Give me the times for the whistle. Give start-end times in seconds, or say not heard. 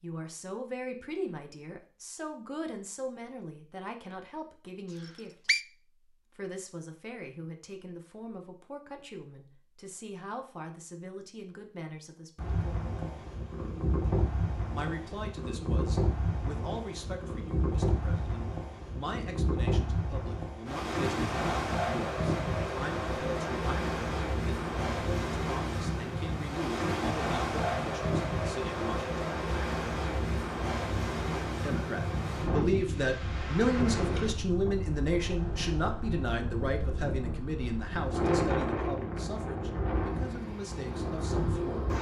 5.0-5.7.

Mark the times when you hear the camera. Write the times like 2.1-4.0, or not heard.
not heard.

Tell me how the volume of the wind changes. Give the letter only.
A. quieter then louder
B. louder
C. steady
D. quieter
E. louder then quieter
C.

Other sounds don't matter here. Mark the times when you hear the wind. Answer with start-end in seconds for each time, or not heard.
12.3-41.9.